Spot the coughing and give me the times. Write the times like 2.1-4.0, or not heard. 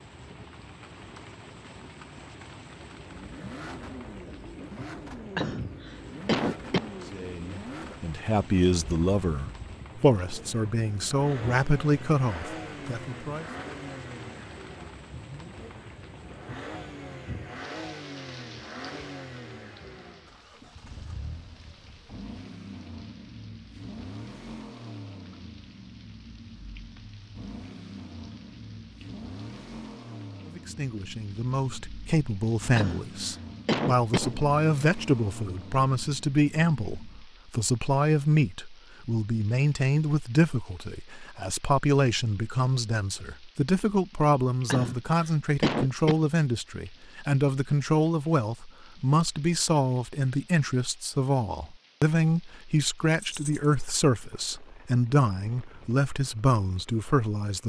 5.3-6.9, 32.8-34.4, 44.7-46.2.